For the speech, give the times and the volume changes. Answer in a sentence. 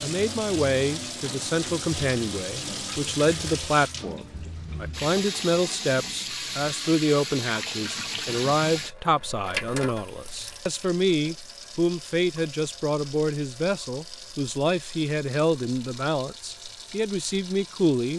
You can hear the speech from 0.0 to 18.1 s, at a steady volume.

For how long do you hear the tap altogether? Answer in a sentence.
You can hear the tap for 18 seconds altogether.